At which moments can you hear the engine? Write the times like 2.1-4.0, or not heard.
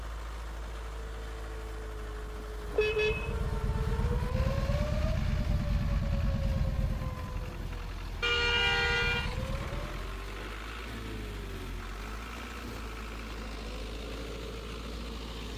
0.0-15.5.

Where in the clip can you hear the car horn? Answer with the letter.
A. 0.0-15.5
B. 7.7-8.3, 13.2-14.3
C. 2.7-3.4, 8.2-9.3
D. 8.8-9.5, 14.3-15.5
C.